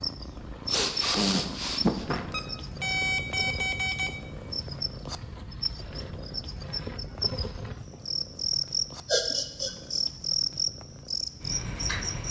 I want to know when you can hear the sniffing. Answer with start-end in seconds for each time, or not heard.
0.7-2.2, 9.1-10.1.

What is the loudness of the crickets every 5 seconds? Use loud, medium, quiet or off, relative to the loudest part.
medium, loud, loud.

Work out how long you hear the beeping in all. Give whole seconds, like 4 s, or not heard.
2 s.